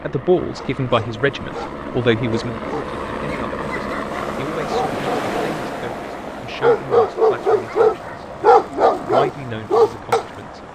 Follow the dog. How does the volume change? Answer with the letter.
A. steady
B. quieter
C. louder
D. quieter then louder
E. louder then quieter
C.